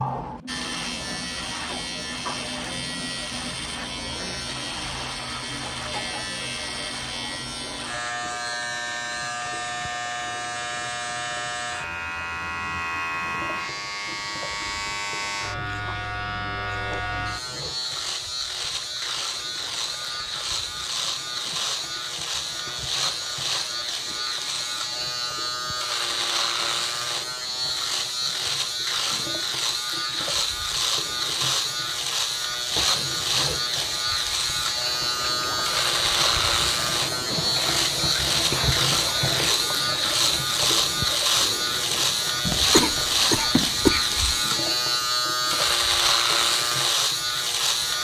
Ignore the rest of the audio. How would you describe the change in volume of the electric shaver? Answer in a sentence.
The loudness of the electric shaver goes up.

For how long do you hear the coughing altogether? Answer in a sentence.
You can hear the coughing for 2 seconds altogether.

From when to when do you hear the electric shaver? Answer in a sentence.
You can hear the electric shaver from 0.0 to 47.9 s.